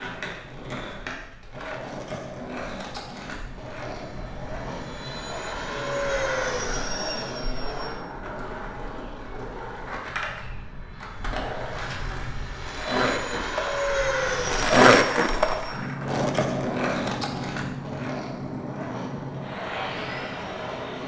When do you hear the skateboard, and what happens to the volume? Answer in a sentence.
The skateboard can be heard from 0.0 to 21.0 s, getting louder then quieter.